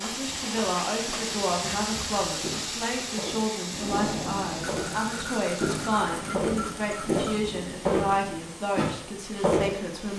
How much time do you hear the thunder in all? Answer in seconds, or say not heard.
5 s.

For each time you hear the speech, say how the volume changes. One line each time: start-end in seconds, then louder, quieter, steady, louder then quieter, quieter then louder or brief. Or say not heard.
0.0-10.1 steady.